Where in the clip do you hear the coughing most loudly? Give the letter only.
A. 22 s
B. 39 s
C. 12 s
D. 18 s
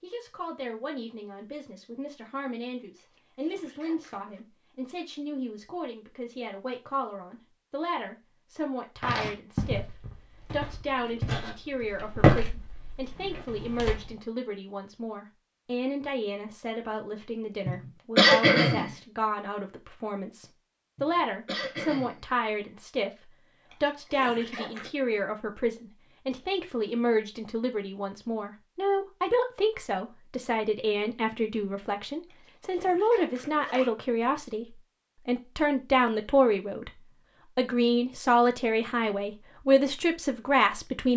D.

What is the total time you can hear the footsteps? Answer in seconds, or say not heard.
5 s.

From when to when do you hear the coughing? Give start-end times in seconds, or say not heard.
17.6-18.9, 20.9-22.2.